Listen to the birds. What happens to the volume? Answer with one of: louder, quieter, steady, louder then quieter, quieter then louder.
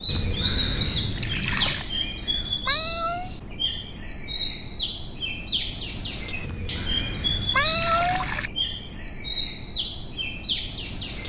steady.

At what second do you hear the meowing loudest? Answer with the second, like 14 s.
8 s.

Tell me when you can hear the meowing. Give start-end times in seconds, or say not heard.
2.6-3.3, 7.5-8.2.